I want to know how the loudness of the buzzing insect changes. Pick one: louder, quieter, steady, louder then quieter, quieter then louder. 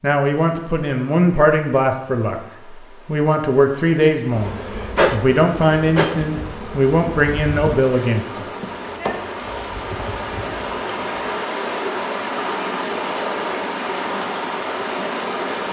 quieter.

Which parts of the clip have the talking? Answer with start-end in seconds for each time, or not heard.
0.0-8.4.